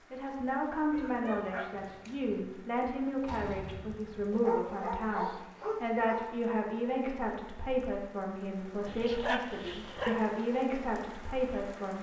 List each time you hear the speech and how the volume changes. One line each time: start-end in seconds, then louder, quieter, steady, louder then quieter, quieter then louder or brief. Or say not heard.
0.1-11.9 steady.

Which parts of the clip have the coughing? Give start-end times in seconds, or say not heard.
not heard.